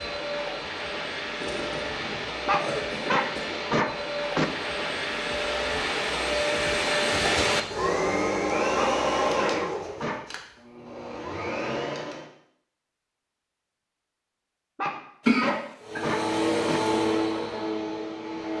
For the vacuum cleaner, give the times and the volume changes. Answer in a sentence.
You can hear the vacuum cleaner from 0.0 to 12.3 s, getting louder then quieter; and briefly from 15.8 to 18.5 s.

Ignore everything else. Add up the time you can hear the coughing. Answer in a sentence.
You can hear the coughing for 4 seconds altogether.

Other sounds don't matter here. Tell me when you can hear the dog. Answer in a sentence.
You can hear the dog from 2.5 to 4.5 s, from 8.8 to 10.2 s and from 14.8 to 16.8 s.